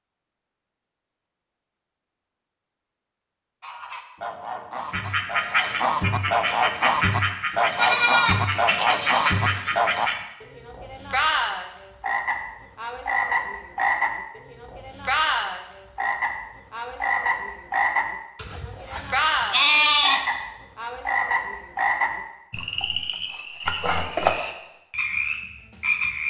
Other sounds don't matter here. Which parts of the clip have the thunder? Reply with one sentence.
You can't hear the thunder here.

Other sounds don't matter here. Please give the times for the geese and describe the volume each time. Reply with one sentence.
You can hear the geese from 3.6 to 10.1 s, getting louder.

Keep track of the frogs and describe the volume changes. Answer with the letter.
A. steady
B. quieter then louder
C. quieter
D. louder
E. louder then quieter
A.